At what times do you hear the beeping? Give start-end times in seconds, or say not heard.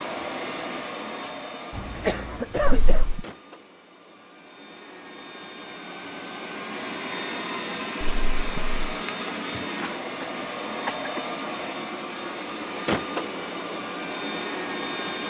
2.6-3.2, 8.0-8.8.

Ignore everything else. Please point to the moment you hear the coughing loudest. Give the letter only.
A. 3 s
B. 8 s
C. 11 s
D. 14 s
A.